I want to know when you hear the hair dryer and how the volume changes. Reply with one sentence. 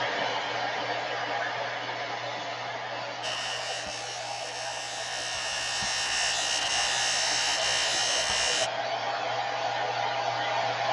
The hair dryer can be heard from 0.0 to 10.8 s, getting quieter then louder.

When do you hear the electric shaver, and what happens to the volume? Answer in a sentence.
You can hear the electric shaver from 3.2 to 8.7 s, getting louder.